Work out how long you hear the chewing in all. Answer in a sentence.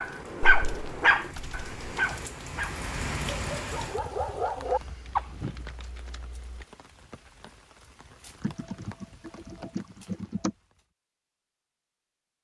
The chewing can't be heard in this clip.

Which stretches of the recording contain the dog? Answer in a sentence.
The dog can be heard from 0.0 to 5.5 s.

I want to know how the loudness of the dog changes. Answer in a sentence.
The volume of the dog goes down, then up.